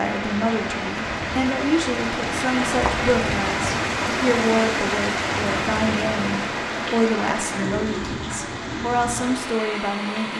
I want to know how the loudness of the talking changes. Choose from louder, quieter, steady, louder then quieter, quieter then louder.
steady.